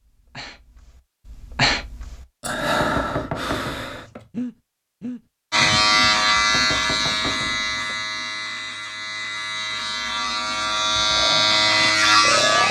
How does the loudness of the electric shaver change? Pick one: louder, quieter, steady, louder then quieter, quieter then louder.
quieter then louder.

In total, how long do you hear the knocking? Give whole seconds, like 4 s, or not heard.
3 s.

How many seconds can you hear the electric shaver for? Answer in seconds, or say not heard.
7 s.